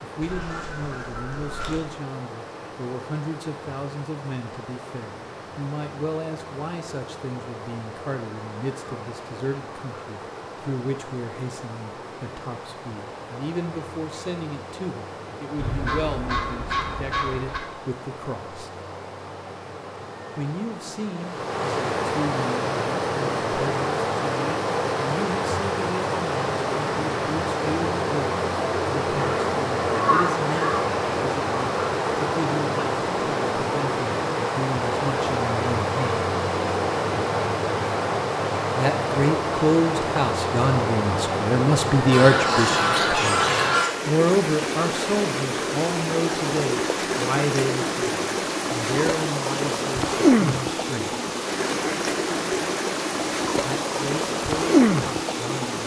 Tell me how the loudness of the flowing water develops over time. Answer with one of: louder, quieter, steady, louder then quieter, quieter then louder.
louder.